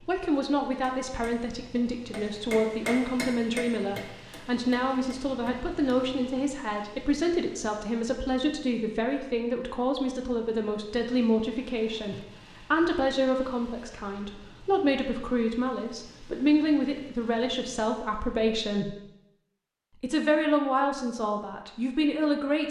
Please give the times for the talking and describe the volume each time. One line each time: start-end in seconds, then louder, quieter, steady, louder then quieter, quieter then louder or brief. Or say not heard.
0.1-18.9 steady
20.0-22.6 brief.